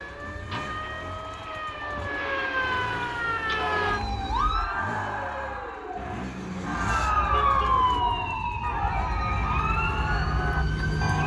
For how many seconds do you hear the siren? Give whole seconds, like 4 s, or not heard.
9 s.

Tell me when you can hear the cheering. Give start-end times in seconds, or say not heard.
3.5-11.2.